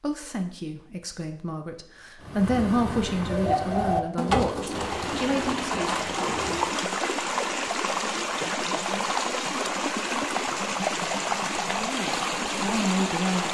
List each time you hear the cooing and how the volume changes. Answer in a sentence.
You can hear the cooing from 2.2 to 6.8 s, getting louder then quieter.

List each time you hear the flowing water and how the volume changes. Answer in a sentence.
The flowing water can be heard from 4.7 to 13.4 s, at a steady volume.